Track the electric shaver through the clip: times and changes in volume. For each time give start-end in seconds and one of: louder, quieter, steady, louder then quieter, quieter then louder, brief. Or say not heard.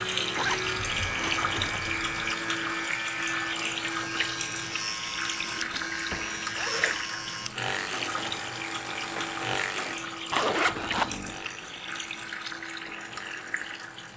0.0-14.1 quieter.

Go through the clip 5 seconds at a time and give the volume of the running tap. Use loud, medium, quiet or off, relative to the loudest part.
loud, loud, medium.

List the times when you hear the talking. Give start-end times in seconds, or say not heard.
not heard.